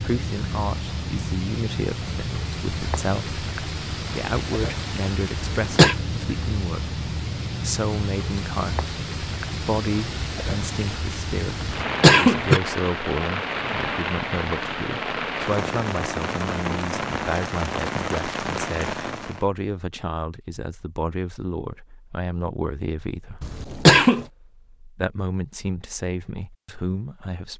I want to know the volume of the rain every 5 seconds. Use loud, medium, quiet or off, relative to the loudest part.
loud, loud, loud, loud, off, off.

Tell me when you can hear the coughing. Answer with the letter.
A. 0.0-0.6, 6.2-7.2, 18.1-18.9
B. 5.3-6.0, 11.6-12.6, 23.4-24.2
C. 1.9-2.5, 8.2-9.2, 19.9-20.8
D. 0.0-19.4
B.